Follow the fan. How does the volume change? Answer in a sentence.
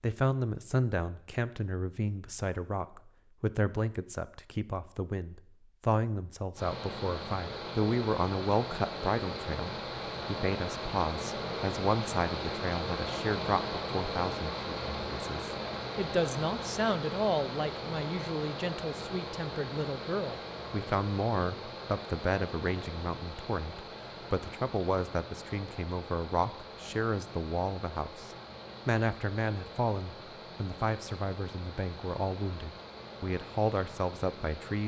The volume of the fan goes down.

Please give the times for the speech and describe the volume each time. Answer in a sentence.
You can hear the speech from 0.0 to 34.8 s, at a steady volume.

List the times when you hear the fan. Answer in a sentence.
The fan can be heard from 6.5 to 34.8 s.